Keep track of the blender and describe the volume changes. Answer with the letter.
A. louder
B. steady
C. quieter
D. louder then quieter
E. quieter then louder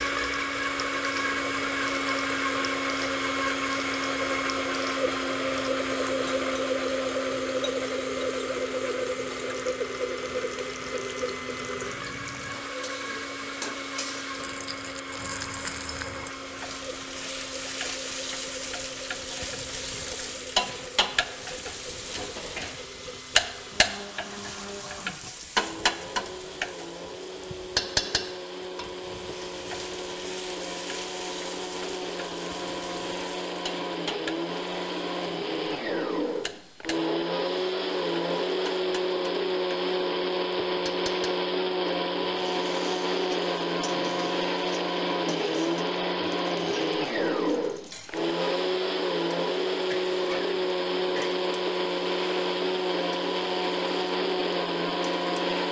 E.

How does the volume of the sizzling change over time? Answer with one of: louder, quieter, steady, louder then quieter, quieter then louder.
louder then quieter.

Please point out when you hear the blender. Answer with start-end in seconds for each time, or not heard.
0.0-55.6.